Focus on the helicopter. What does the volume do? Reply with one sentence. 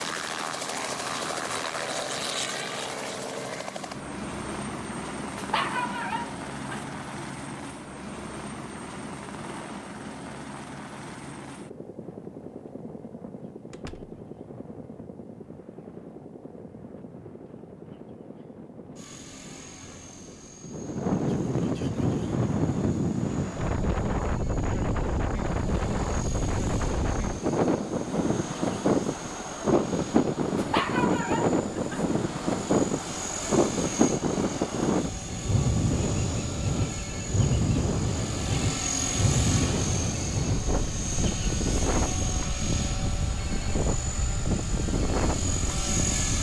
The loudness of the helicopter goes down, then up.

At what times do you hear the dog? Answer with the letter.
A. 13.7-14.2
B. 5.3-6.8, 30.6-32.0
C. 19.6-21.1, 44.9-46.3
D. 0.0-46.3
B.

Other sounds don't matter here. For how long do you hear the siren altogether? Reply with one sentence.
You can't hear the siren here.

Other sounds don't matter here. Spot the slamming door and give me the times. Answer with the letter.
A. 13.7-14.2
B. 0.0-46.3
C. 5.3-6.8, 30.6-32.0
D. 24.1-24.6
A.